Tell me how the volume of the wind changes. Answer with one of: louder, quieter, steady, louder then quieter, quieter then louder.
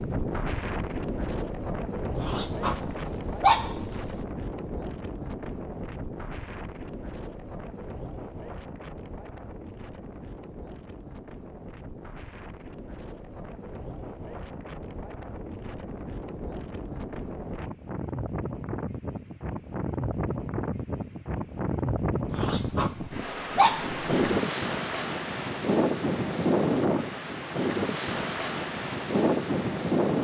quieter then louder.